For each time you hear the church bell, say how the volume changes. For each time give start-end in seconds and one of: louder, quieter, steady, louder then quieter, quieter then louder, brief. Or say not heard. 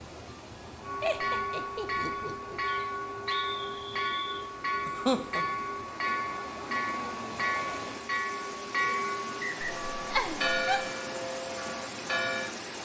0.8-12.5 steady.